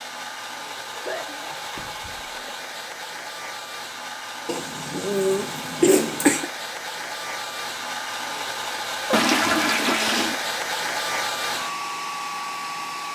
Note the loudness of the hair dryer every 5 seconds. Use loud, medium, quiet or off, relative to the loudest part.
medium, loud, loud.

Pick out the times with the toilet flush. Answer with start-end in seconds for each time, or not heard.
9.1-10.4.